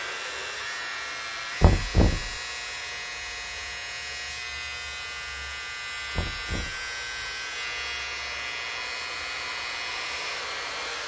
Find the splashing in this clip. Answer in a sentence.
The splashing can't be heard in this clip.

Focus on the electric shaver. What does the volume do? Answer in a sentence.
The volume of the electric shaver stays about the same.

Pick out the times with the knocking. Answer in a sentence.
The knocking can be heard from 1.6 to 2.4 s and from 6.2 to 6.9 s.